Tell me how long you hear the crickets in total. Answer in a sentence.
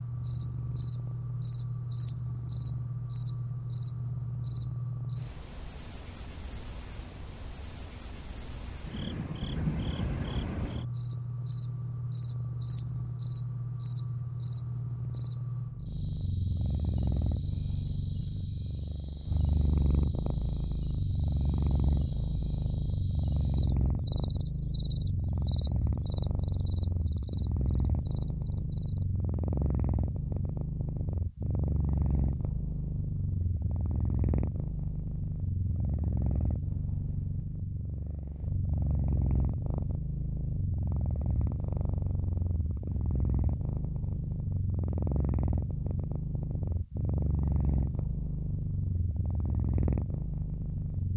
You can hear the crickets for 29 seconds altogether.